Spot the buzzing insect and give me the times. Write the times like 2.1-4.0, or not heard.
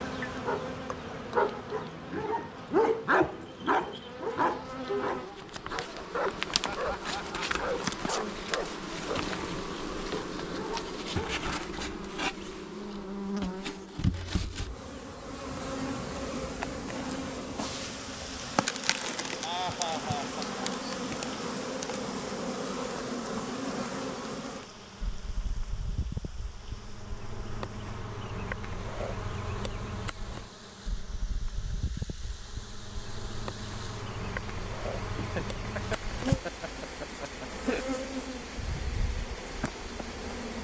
0.0-40.5.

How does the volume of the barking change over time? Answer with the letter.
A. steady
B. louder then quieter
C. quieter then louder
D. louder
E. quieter
E.